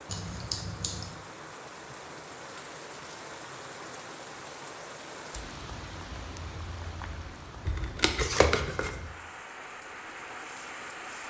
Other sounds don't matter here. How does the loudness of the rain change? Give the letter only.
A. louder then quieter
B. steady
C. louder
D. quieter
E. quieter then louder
B.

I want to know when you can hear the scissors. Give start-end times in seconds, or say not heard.
0.1-1.1, 7.7-9.0.